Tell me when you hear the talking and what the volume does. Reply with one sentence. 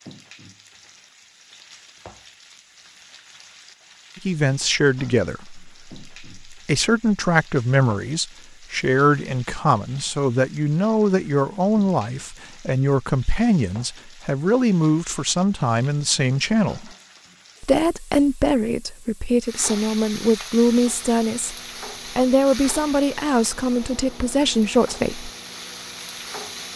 You can hear the talking from 4.2 to 16.9 s, at a steady volume; and from 17.6 to 25.3 s, at a steady volume.